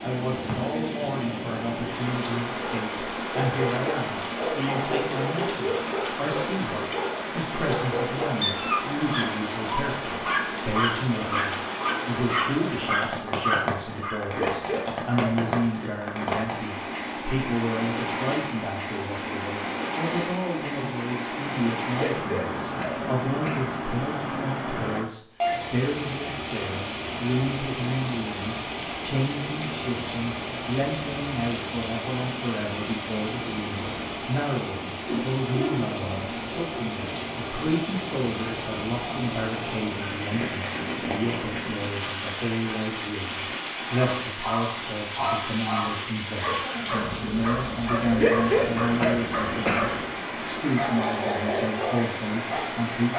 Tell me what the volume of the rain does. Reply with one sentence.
The volume of the rain stays about the same.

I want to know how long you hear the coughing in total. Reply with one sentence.
You can hear the coughing for 5 seconds altogether.